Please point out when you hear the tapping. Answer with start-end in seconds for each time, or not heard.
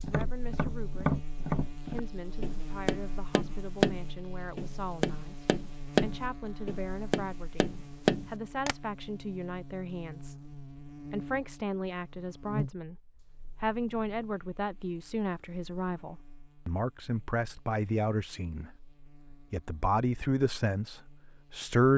0.0-8.8.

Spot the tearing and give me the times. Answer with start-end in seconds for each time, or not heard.
not heard.